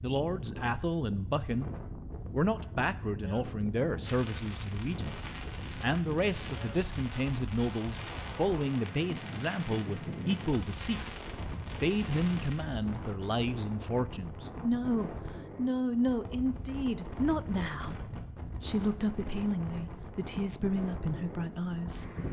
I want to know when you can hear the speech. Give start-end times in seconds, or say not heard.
0.0-1.7, 2.3-5.2, 5.8-11.0, 11.8-22.1.